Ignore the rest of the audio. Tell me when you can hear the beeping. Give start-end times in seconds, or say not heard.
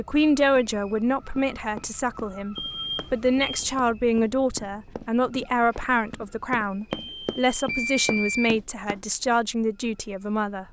2.5-3.5, 6.9-8.5.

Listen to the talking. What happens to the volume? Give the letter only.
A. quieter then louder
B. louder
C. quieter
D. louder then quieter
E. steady
E.